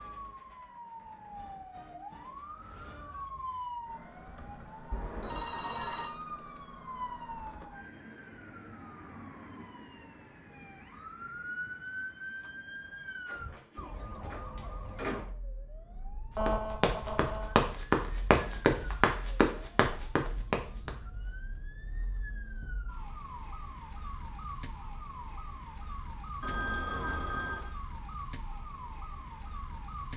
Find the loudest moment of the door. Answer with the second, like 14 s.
15 s.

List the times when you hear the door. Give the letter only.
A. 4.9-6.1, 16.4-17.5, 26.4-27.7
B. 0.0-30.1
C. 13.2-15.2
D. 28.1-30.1
C.